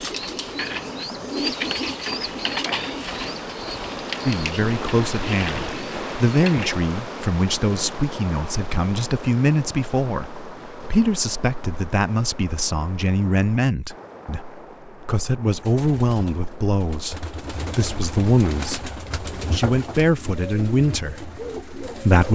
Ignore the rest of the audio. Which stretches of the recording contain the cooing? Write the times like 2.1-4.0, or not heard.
0.0-6.7, 15.5-22.3.